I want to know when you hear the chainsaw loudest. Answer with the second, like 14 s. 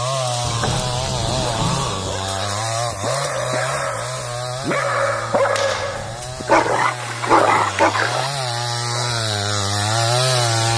10 s.